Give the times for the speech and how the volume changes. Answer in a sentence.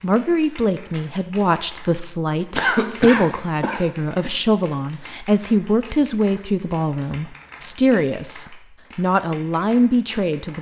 You can hear the speech from 0.0 to 10.5 s, at a steady volume.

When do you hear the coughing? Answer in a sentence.
The coughing can be heard from 2.5 to 4.3 s.